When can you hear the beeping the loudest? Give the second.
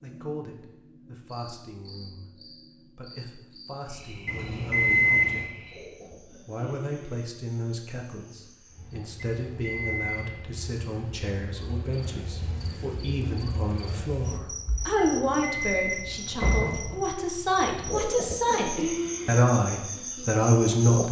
5 s.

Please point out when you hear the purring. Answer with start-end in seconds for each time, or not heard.
not heard.